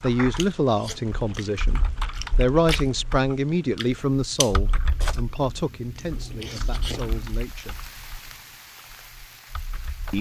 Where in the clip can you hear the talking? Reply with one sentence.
The talking can be heard from 0.0 to 7.8 s.